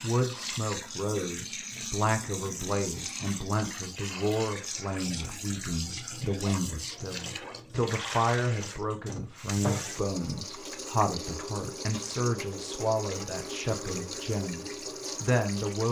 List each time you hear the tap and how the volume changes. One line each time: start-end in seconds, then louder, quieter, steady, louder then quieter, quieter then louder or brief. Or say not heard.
0.0-15.8 steady.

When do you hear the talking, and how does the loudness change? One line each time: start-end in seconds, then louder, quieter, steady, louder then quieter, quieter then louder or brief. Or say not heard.
0.0-15.8 steady.